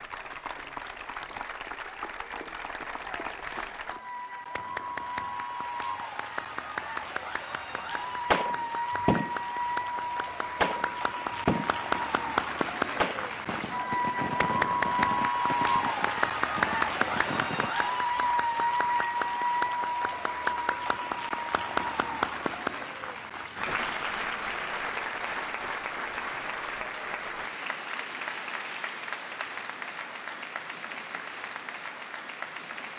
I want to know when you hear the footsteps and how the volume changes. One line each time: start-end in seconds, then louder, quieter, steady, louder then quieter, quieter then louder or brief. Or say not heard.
not heard.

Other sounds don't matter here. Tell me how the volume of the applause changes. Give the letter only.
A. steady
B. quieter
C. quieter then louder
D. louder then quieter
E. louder
D.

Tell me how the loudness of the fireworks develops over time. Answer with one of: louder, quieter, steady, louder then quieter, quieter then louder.
quieter.